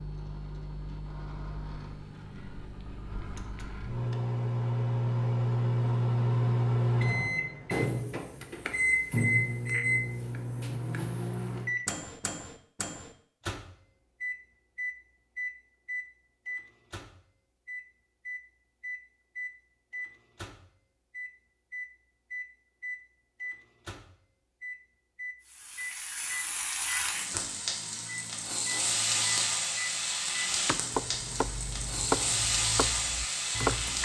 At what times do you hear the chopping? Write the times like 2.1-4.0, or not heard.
30.5-34.0.